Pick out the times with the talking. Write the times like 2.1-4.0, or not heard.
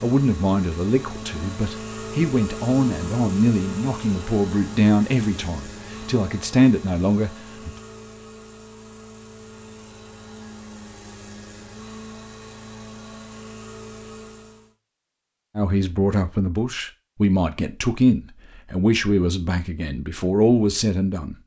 0.0-7.7, 15.6-21.4.